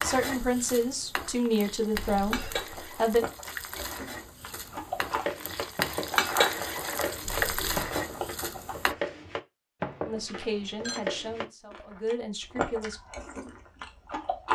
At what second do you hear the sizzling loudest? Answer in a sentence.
The volume of the sizzling peaks at 6 seconds.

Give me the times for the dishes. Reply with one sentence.
You can hear the dishes from 4.5 to 11.8 s.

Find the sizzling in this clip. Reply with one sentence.
You can hear the sizzling from 0.0 to 8.9 s.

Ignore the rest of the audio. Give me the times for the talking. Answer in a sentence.
The talking can be heard from 0.0 to 3.2 s and from 10.1 to 13.0 s.